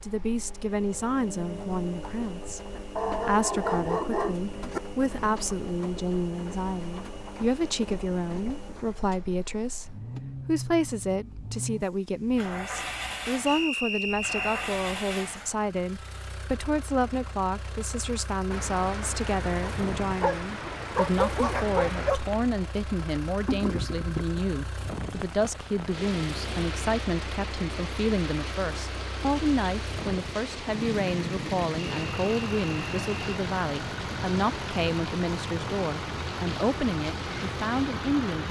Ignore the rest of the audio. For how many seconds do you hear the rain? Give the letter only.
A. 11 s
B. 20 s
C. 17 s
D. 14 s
B.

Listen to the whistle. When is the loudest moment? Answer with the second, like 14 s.
14 s.